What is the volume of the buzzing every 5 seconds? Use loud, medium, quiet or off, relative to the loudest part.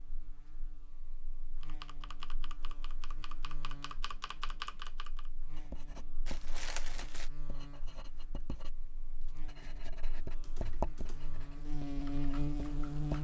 quiet, quiet, loud.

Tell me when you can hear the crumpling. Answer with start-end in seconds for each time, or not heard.
6.2-7.3.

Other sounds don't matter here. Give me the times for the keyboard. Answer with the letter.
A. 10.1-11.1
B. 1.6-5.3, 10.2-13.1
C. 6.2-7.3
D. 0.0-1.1
B.